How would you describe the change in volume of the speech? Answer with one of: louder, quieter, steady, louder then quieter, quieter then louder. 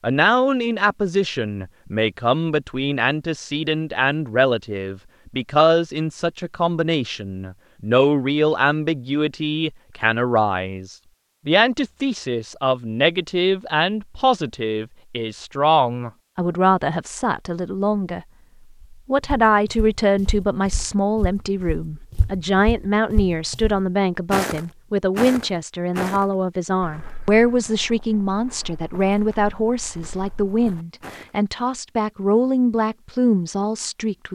steady.